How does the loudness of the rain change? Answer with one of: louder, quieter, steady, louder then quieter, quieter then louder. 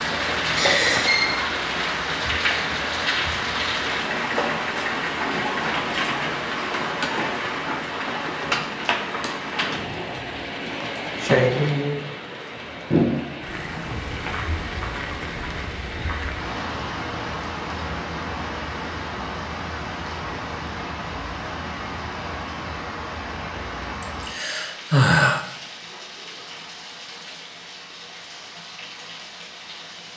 quieter.